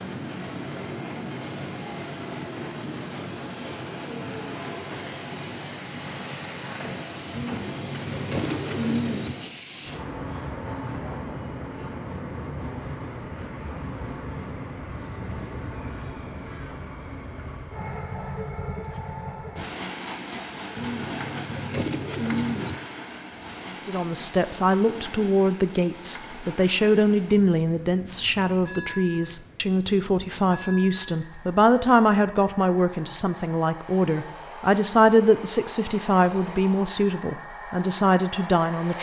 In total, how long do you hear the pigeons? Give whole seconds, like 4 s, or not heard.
4 s.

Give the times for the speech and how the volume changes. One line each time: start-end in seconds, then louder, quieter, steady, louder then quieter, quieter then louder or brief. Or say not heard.
23.8-38.9 steady.